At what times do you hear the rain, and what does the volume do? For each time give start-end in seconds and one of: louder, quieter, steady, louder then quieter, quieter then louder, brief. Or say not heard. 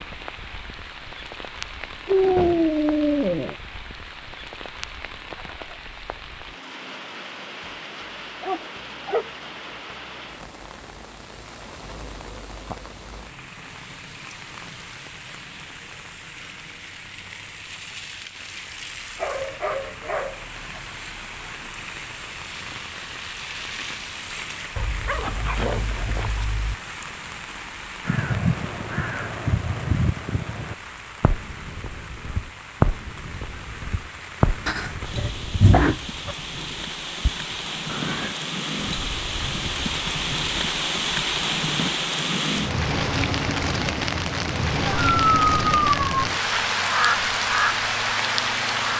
0.0-48.9 louder.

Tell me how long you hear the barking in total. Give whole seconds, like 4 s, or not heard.
9 s.